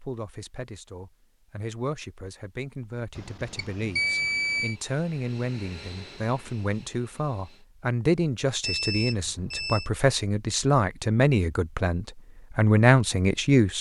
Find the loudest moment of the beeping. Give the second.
4 s.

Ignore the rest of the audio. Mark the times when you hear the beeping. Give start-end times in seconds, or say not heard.
3.1-4.8, 8.6-9.9.